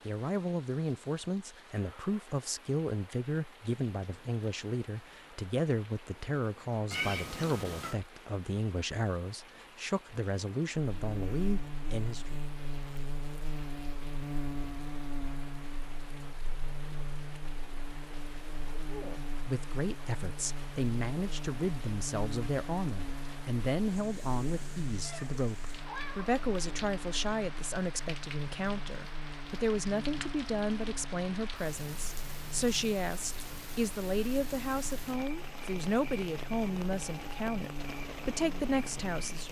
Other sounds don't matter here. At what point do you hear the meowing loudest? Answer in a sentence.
The loudest moment of the meowing is at 7 seconds.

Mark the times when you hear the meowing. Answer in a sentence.
The meowing can be heard from 6.9 to 8.0 s and from 25.0 to 26.3 s.